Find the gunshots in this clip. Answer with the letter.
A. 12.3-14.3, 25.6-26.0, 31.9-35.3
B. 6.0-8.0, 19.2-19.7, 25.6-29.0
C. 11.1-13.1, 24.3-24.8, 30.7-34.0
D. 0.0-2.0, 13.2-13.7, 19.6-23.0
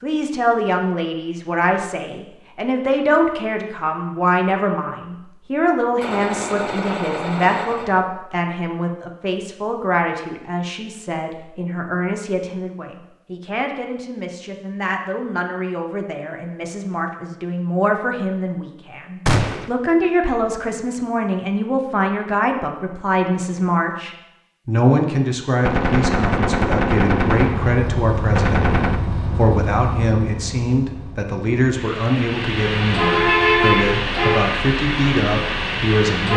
B.